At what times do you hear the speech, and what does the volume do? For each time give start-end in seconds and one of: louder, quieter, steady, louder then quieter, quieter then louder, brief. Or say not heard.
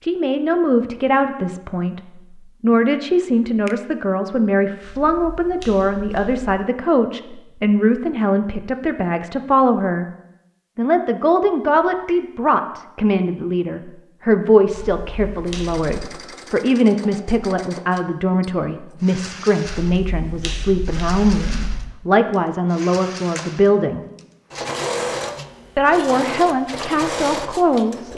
0.0-10.1 steady
10.8-24.1 steady
25.8-28.1 brief.